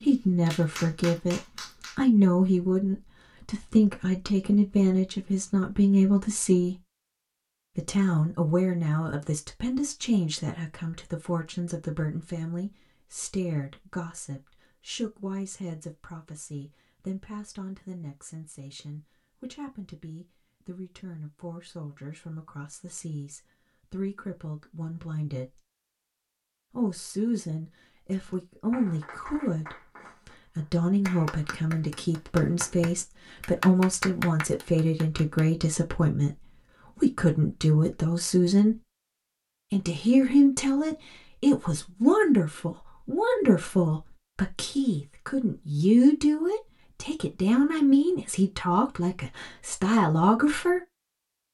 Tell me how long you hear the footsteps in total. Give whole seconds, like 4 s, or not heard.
not heard.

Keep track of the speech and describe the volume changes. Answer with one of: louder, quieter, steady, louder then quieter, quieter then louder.
quieter then louder.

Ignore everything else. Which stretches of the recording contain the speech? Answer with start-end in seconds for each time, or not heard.
0.0-6.8, 7.8-25.6, 26.7-38.8, 39.7-50.8.